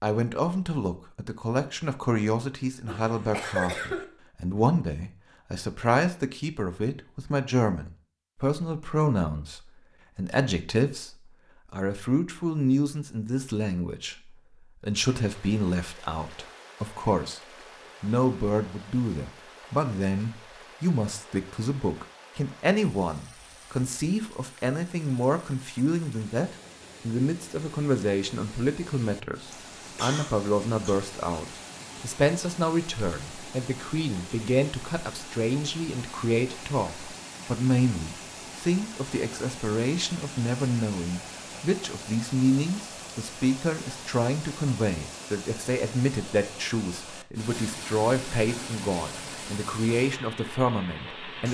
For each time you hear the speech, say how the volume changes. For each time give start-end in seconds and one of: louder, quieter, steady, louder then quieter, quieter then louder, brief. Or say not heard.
0.0-17.4 steady
18.0-51.4 steady.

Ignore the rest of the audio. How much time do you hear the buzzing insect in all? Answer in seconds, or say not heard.
not heard.